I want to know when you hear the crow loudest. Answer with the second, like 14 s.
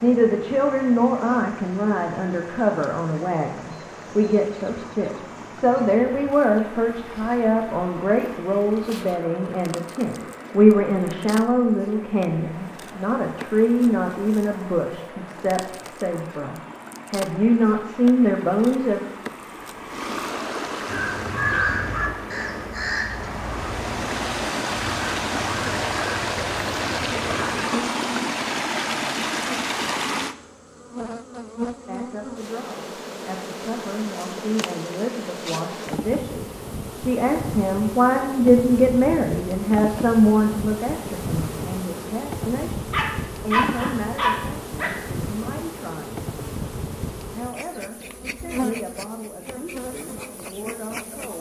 22 s.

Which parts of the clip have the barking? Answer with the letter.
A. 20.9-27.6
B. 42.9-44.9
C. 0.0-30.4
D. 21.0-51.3
B.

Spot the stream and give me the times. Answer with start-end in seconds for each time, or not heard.
0.0-30.4.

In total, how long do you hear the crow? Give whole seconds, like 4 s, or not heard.
7 s.